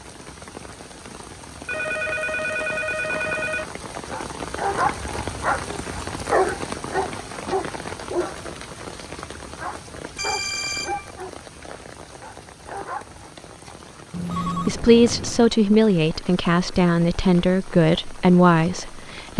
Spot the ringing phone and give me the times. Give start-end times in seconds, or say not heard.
1.6-3.6, 10.2-11.2, 14.1-15.5.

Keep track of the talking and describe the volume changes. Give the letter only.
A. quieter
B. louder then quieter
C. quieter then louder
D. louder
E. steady
E.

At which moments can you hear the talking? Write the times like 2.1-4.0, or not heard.
14.4-19.3.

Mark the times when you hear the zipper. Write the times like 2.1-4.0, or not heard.
not heard.